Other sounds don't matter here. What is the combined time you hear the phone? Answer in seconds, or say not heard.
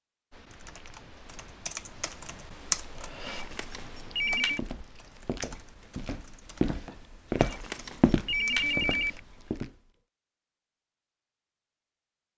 3 s.